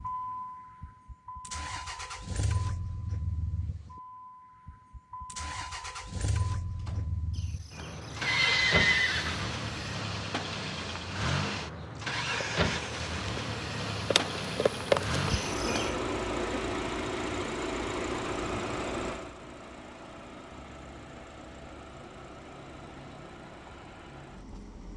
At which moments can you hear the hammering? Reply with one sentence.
You can't hear the hammering here.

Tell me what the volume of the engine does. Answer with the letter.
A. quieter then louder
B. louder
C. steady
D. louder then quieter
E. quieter
D.